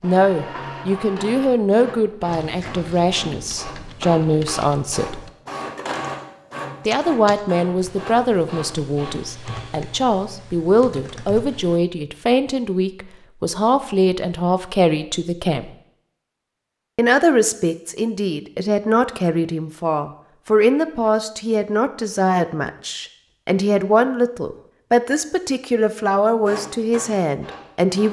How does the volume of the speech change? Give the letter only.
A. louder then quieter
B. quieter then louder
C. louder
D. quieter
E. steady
E.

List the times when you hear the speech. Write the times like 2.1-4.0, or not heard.
0.0-5.2, 6.8-15.7, 16.9-28.0.